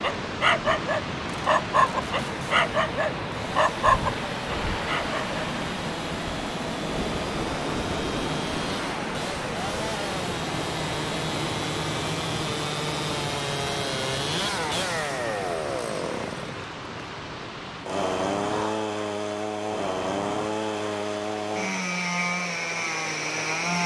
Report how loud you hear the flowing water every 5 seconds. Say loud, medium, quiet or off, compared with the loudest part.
loud, loud, loud, medium, medium.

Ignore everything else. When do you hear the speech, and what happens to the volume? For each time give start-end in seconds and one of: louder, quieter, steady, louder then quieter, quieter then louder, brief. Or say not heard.
not heard.